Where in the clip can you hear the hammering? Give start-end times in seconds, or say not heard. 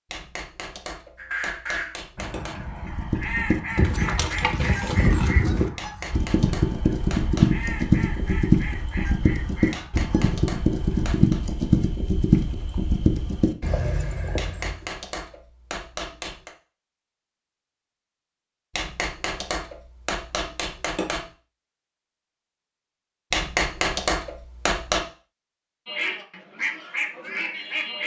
0.1-2.6, 5.8-7.6, 9.7-11.4, 14.3-16.6, 18.8-21.2, 23.3-25.1.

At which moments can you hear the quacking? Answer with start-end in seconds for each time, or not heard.
1.1-11.2, 25.9-28.0.